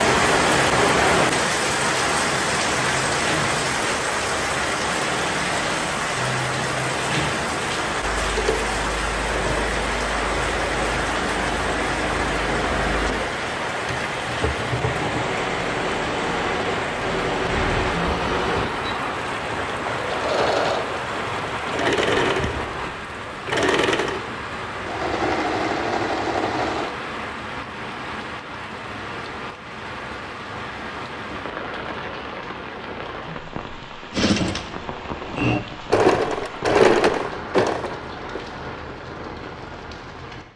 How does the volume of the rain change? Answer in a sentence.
The volume of the rain goes down.